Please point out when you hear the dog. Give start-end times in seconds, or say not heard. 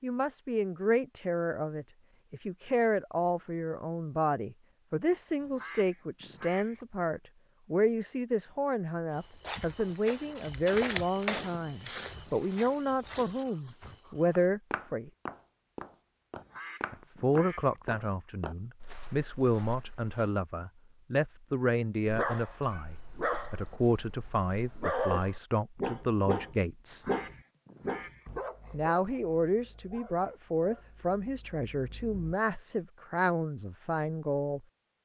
22.1-32.4.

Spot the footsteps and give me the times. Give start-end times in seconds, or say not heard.
9.1-20.3.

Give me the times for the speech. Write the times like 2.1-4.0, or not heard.
0.0-15.1, 16.9-27.1, 28.7-34.6.